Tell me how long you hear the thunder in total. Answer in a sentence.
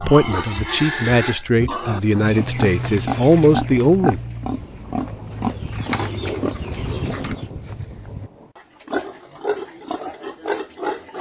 You can hear the thunder for 4 seconds altogether.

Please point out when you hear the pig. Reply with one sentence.
You can hear the pig from 0.0 to 11.1 s.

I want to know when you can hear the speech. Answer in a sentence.
The speech can be heard from 0.0 to 4.2 s.